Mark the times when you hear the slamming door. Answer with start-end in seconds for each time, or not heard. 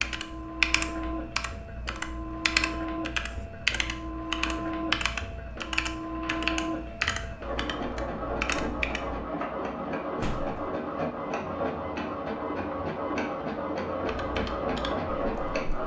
10.2-10.7.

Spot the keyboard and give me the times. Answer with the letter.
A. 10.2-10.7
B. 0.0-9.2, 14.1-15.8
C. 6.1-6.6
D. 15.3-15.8
B.